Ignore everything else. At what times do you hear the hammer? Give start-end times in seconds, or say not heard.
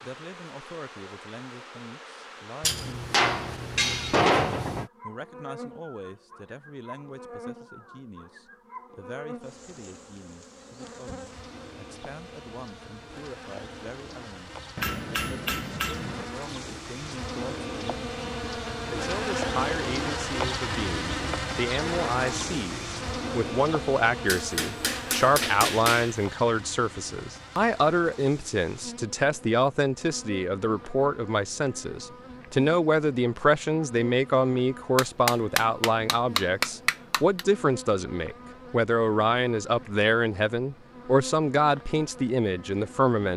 2.6-4.9, 14.8-16.2, 24.2-26.1, 35.0-37.5.